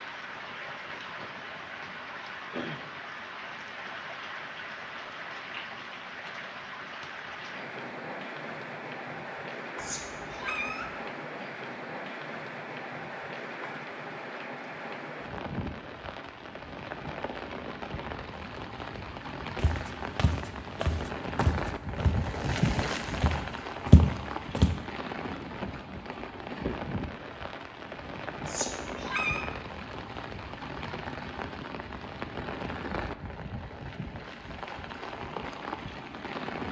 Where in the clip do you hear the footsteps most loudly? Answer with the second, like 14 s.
24 s.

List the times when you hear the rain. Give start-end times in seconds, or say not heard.
0.0-36.6.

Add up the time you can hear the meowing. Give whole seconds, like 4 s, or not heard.
2 s.